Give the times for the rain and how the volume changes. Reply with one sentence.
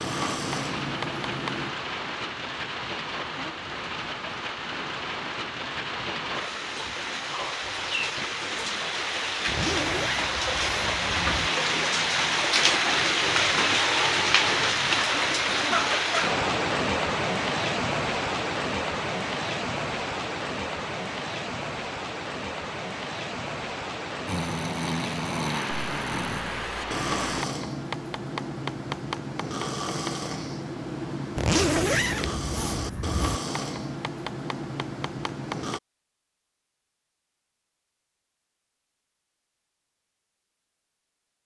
You can hear the rain from 0.0 to 27.4 s, getting louder then quieter.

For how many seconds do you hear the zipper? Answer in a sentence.
You can hear the zipper for 4 seconds altogether.